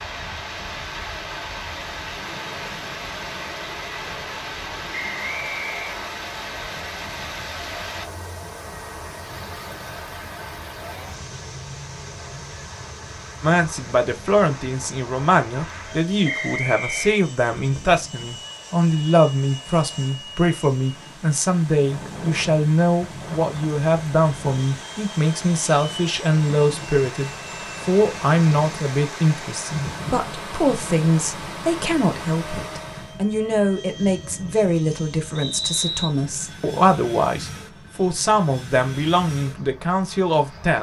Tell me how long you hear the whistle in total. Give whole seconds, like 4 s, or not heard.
3 s.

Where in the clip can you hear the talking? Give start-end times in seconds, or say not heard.
13.4-40.7.